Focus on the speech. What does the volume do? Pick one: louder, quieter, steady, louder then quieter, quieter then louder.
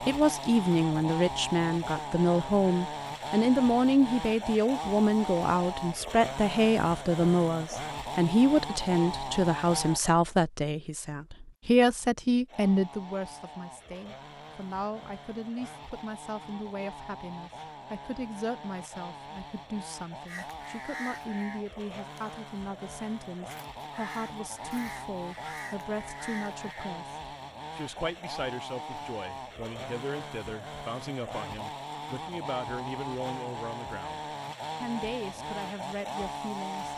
quieter.